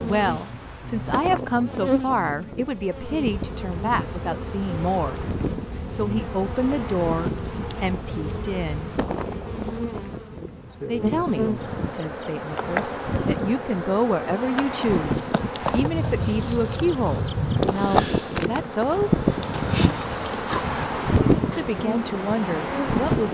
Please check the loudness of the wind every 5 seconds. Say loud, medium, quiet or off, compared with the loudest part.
medium, medium, medium, loud, loud.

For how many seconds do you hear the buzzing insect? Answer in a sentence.
The buzzing insect can be heard for 23 seconds in total.